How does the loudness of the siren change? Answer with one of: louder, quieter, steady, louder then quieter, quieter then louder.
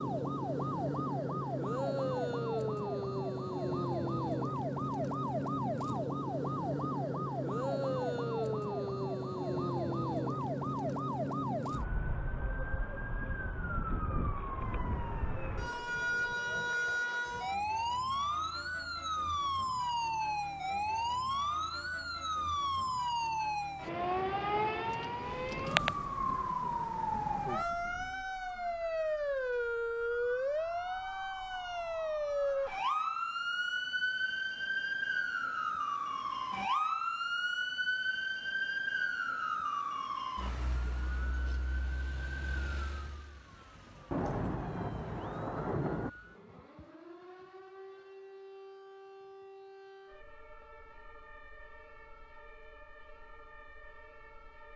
quieter.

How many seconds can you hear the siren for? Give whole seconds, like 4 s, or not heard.
55 s.